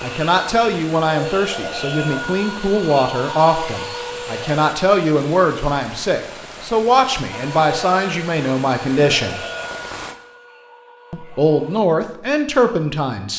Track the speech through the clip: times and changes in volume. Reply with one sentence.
The speech can be heard from 0.0 to 9.4 s, at a steady volume; and briefly from 11.1 to 13.3 s.